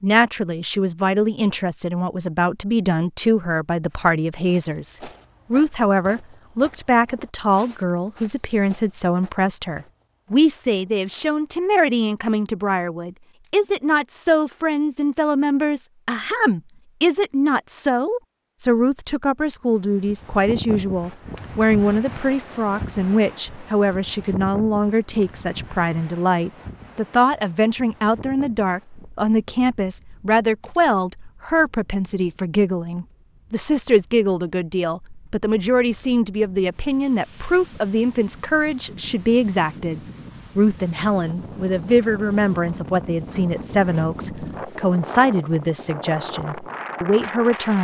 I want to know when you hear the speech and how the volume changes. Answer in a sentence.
You can hear the speech from 0.0 to 47.8 s, at a steady volume.